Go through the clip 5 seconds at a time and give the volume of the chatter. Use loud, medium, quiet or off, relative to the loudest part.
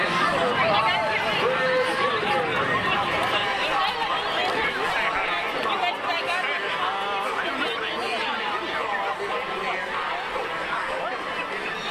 loud, loud, medium.